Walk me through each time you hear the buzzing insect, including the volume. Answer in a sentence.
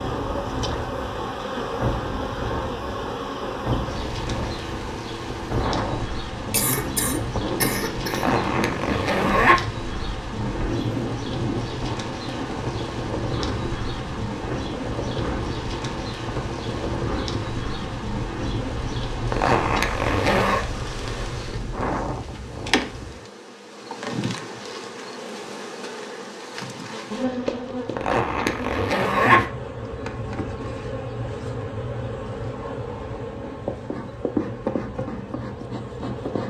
You can hear the buzzing insect from 0.0 to 36.4 s, at a steady volume.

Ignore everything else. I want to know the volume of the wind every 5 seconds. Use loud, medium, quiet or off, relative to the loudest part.
loud, loud, loud, loud, loud, off, off, off.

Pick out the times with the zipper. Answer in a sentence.
You can hear the zipper from 8.1 to 9.6 s, from 19.3 to 20.6 s and from 27.9 to 29.4 s.